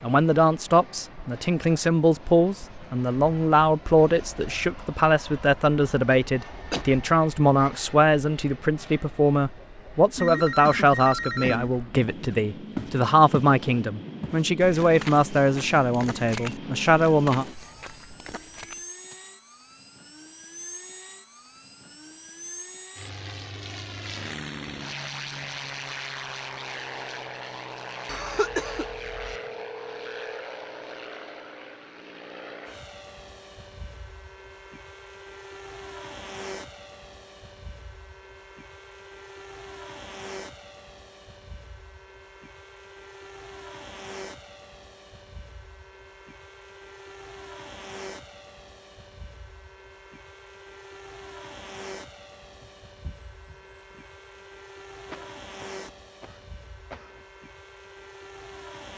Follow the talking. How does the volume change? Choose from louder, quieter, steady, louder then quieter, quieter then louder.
steady.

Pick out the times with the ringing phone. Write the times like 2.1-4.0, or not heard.
10.2-11.8, 28.4-30.4, 52.6-54.4.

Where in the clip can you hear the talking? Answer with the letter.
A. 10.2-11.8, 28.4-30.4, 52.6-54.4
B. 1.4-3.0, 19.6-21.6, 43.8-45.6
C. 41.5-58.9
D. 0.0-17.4
D.